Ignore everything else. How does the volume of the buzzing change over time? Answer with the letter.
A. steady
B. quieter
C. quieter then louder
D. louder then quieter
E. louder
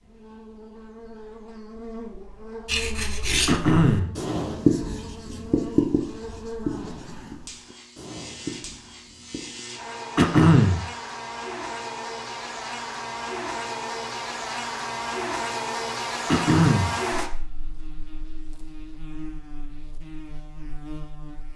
D.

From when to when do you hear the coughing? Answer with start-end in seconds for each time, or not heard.
3.5-4.2, 10.2-10.8, 16.2-16.9.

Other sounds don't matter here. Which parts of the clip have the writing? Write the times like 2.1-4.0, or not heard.
2.6-9.6.